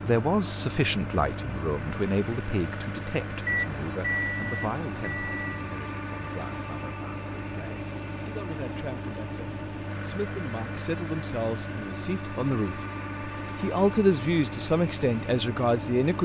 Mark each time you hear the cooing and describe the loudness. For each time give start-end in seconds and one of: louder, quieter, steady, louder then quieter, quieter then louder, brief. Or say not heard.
not heard.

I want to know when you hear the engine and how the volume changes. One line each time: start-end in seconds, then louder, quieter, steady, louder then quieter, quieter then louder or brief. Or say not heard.
0.0-16.2 steady.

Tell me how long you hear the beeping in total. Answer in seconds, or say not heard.
2 s.